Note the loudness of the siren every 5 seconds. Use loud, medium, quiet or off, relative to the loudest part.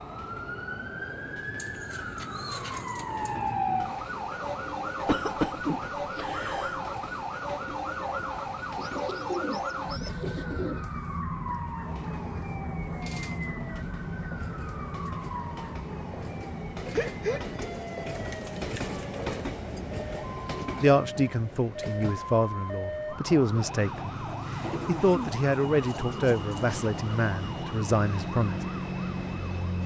loud, loud, loud, medium, loud, loud.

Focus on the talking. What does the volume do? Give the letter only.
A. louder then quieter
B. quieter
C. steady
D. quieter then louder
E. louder
C.